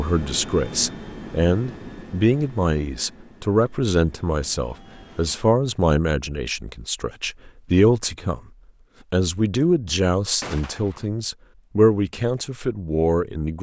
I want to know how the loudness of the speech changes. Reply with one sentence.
The loudness of the speech stays about the same.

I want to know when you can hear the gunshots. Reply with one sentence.
The gunshots can be heard from 10.4 to 11.1 s.